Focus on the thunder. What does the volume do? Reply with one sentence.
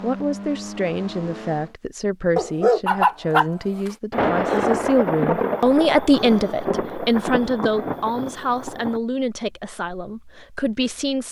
The loudness of the thunder goes down.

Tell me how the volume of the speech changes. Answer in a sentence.
The volume of the speech goes up, then down.